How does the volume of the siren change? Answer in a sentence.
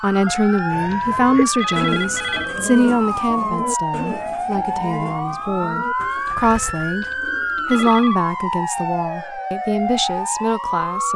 The volume of the siren stays about the same.